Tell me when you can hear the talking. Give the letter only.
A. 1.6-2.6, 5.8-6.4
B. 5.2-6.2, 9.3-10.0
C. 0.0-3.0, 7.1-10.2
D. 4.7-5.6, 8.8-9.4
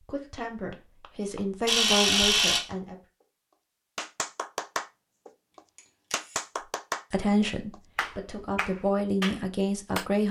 C.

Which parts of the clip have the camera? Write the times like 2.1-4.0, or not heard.
1.6-2.6, 5.8-6.4.